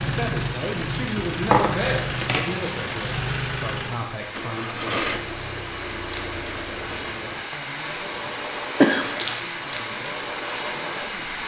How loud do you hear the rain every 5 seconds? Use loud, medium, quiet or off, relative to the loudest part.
medium, loud, loud.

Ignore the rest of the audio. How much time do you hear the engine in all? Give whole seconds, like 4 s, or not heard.
11 s.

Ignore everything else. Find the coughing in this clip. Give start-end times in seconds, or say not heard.
1.1-2.5, 8.8-9.2.